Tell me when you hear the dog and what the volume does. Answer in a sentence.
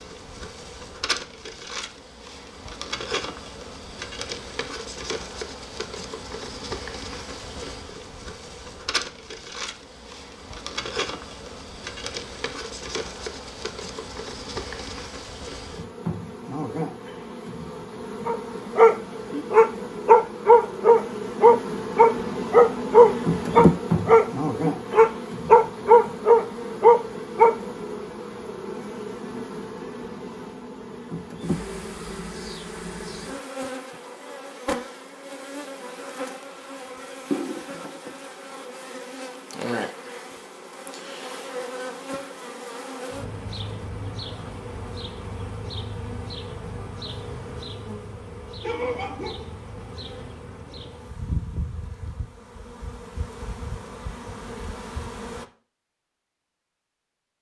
You can hear the dog from 18.2 to 27.6 s, at a steady volume.